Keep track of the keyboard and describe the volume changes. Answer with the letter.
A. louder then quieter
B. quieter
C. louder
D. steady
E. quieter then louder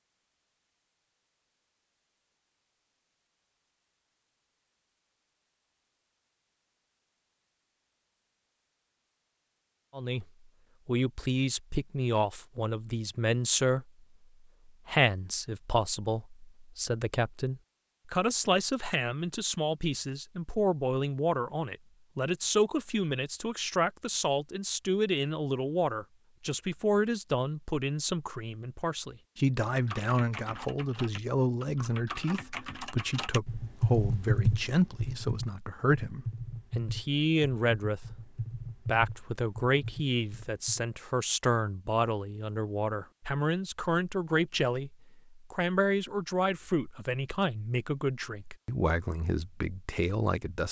A.